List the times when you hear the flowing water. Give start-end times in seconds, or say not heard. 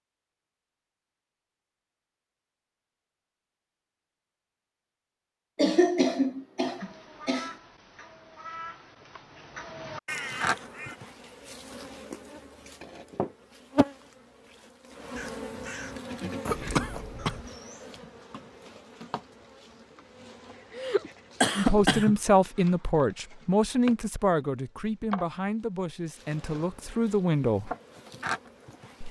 not heard.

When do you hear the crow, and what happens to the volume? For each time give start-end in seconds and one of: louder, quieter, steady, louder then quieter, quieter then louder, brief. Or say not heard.
6.7-11.0 quieter then louder
15.2-17.5 brief.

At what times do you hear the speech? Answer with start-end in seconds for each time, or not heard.
21.6-27.7.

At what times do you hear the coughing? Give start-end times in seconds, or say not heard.
5.5-7.5, 16.5-17.4, 20.8-22.1.